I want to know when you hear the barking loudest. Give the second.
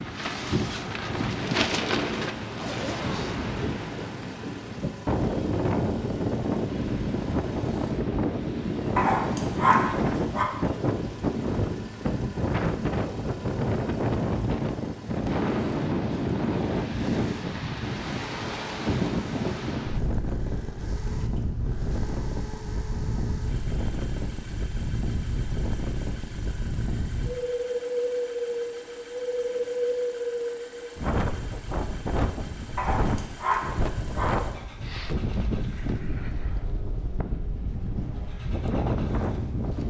10 s.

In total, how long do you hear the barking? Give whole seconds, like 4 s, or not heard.
3 s.